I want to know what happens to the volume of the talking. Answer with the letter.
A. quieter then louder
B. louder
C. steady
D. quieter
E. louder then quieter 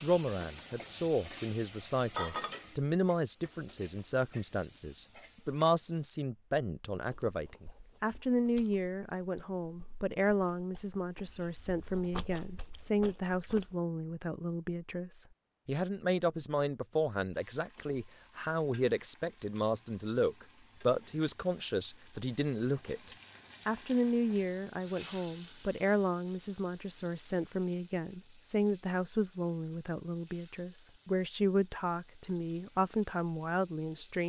C.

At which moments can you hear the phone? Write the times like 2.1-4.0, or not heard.
not heard.